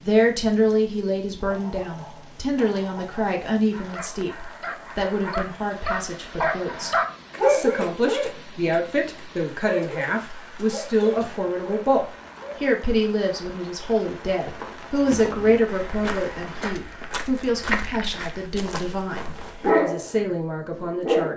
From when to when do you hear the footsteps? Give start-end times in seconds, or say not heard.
14.2-19.7.